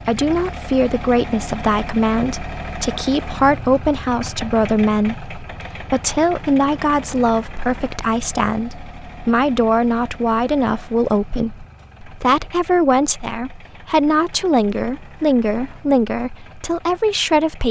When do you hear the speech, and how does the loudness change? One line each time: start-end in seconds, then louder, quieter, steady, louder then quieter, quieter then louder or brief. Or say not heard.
0.1-17.6 steady.